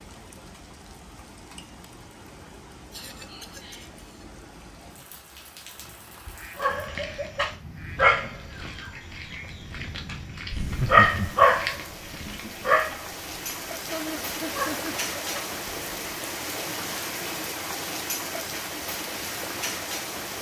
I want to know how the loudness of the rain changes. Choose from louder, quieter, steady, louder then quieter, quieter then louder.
louder.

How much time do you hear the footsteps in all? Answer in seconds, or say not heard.
not heard.